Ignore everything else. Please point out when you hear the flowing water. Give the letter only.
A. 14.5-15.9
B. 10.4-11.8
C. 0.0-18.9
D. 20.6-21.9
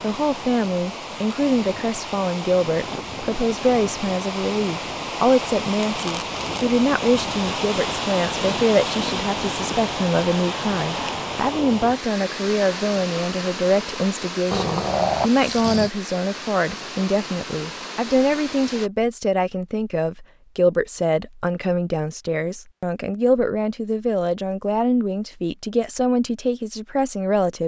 C.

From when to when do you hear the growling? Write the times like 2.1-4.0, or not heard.
14.5-15.9.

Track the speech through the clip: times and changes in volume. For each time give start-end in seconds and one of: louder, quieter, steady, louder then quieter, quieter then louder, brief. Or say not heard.
0.0-27.6 steady.